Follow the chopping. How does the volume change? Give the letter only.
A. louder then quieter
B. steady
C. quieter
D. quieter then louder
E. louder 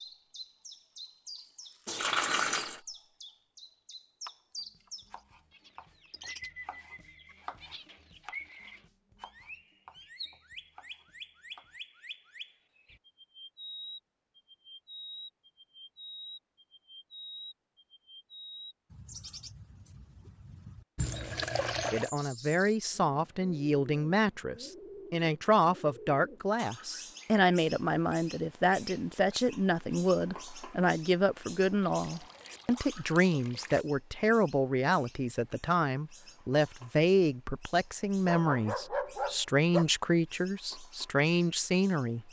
A.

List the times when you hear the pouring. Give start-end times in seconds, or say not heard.
1.9-2.8, 20.9-22.1, 31.8-33.9.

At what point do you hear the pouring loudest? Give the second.
2 s.